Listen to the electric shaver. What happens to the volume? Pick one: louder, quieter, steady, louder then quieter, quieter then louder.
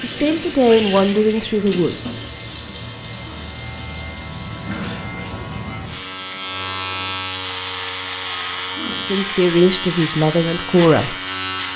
louder.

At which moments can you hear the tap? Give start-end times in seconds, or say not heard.
0.0-7.2.